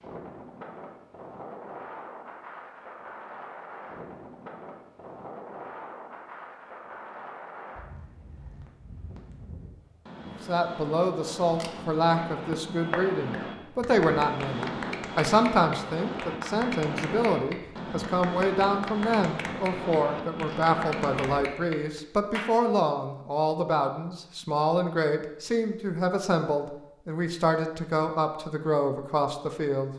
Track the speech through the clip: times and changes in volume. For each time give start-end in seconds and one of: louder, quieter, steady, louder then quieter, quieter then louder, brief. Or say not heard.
10.2-29.9 steady.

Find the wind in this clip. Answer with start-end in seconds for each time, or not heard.
0.0-21.4.